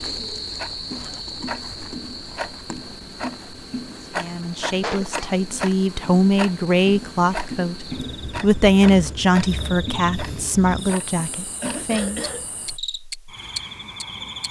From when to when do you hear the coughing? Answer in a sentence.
You can hear the coughing from 4.8 to 5.4 s and from 11.6 to 12.4 s.